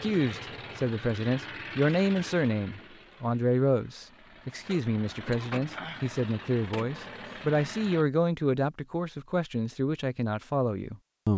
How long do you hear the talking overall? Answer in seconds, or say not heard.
11 s.